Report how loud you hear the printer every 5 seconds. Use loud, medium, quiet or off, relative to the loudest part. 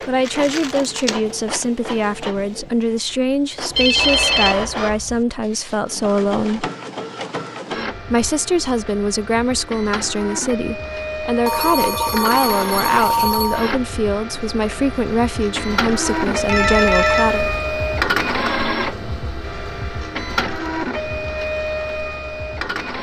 medium, medium, medium, loud, loud.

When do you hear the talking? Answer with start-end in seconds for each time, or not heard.
0.1-6.7, 8.1-17.5.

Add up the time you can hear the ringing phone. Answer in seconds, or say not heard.
5 s.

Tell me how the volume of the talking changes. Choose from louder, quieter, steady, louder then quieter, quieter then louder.
steady.